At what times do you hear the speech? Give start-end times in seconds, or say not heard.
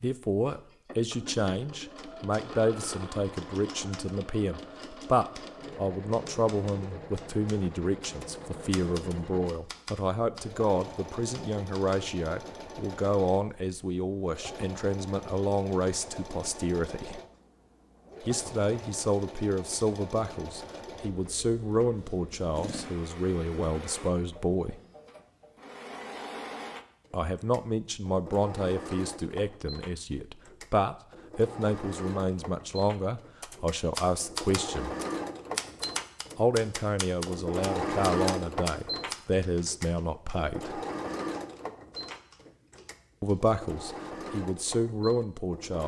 0.0-17.2, 18.2-24.8, 27.1-34.9, 36.4-40.8, 43.2-45.8.